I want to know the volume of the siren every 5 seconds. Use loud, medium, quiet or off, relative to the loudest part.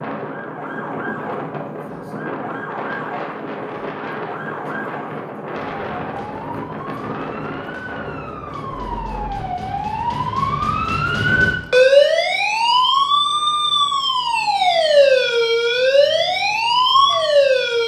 quiet, quiet, loud, loud.